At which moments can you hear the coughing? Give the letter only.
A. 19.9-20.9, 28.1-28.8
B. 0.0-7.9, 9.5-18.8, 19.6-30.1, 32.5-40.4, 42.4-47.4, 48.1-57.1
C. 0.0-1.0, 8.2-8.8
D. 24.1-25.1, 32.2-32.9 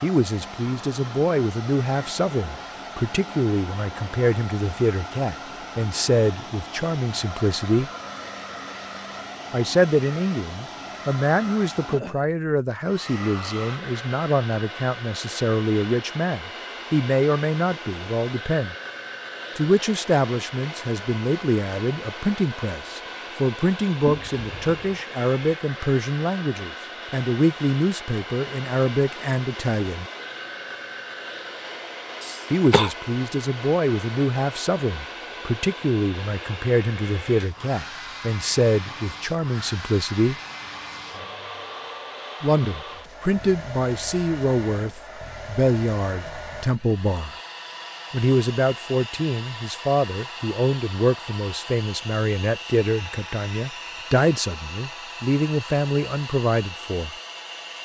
D.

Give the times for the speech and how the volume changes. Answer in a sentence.
The speech can be heard from 0.0 to 7.9 s, at a steady volume; from 9.5 to 18.8 s, at a steady volume; from 19.6 to 30.1 s, at a steady volume; from 32.5 to 40.4 s, at a steady volume; from 42.4 to 47.4 s, at a steady volume; and from 48.1 to 57.1 s, at a steady volume.